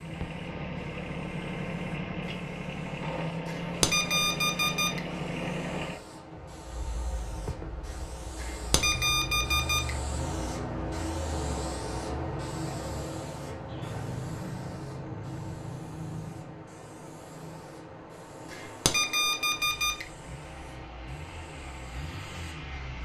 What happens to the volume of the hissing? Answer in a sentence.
The loudness of the hissing goes up, then down.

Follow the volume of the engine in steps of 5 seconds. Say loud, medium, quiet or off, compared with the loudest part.
loud, loud, medium, quiet, medium.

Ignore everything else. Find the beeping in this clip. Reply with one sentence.
You can hear the beeping from 3.5 to 5.0 s, from 8.3 to 9.9 s and from 18.5 to 20.1 s.